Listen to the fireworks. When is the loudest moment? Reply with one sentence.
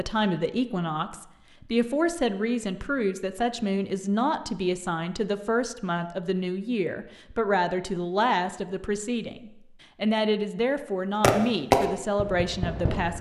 The volume of the fireworks peaks at 12 seconds.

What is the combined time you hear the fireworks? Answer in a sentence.
You can hear the fireworks for 2 seconds altogether.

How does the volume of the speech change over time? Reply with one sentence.
The loudness of the speech stays about the same.